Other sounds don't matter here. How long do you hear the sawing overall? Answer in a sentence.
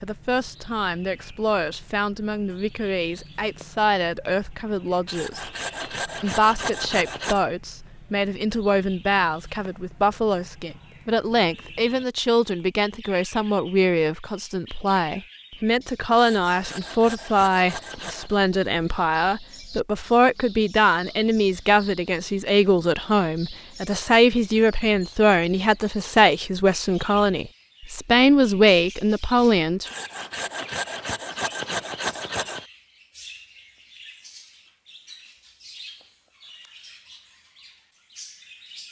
The sawing can be heard for 7 seconds in total.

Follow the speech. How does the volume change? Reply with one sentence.
The volume of the speech goes up.